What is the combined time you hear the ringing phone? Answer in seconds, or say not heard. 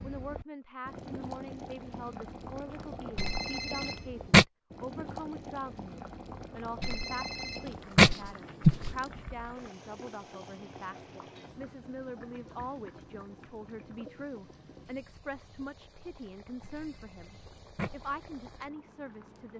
5 s.